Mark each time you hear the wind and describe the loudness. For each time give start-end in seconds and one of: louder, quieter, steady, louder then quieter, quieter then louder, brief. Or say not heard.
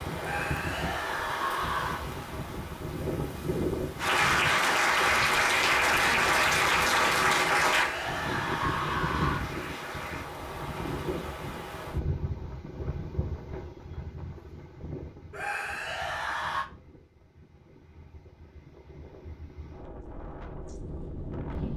0.0-21.7 quieter.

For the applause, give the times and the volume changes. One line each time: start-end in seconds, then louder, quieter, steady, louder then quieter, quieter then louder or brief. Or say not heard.
4.0-10.3 quieter.